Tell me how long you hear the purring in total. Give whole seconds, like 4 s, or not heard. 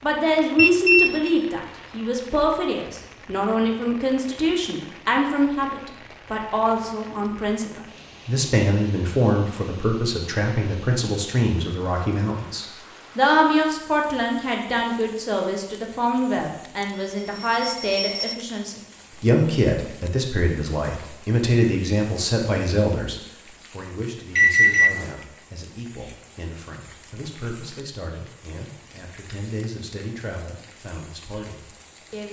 not heard.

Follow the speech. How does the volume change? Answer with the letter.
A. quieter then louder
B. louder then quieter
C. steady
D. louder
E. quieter
E.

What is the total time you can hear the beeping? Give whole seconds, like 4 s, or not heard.
3 s.